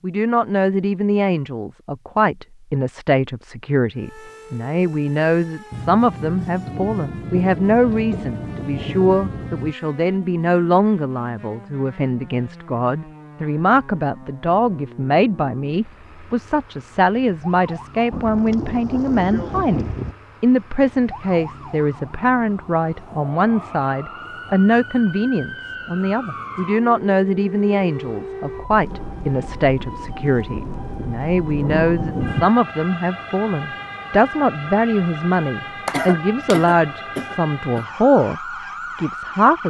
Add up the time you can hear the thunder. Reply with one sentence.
The thunder can be heard for 10 seconds in total.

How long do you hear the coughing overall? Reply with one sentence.
You can hear the coughing for 2 seconds altogether.